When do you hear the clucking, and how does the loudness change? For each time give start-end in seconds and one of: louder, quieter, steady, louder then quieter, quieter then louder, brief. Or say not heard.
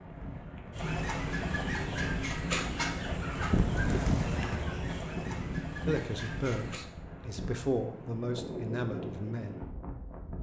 0.7-6.8 quieter.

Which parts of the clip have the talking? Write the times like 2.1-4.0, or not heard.
5.8-9.6.